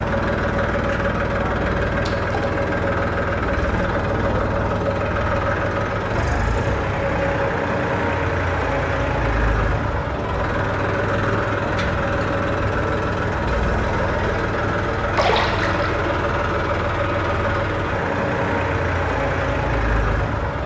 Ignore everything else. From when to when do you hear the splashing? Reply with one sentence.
You can hear the splashing from 2.0 to 2.5 s and from 15.2 to 16.1 s.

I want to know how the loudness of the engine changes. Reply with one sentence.
The volume of the engine stays about the same.